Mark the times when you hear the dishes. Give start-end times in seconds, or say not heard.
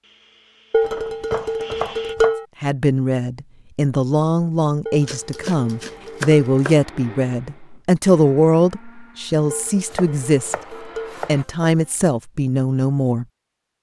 0.7-2.5, 4.8-6.3, 9.5-11.2.